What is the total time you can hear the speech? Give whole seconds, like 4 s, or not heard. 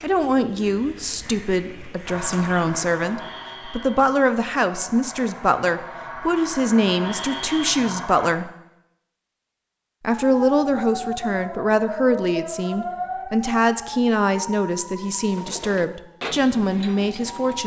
16 s.